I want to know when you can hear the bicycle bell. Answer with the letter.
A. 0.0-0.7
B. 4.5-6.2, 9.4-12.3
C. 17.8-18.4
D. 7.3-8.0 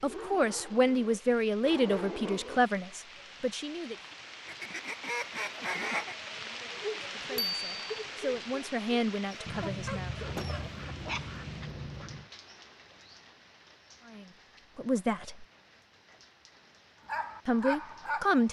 D.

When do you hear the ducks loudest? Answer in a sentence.
The loudest moment of the ducks is at 6 seconds.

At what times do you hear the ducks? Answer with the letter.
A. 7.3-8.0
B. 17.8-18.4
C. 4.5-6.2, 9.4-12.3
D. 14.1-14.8
C.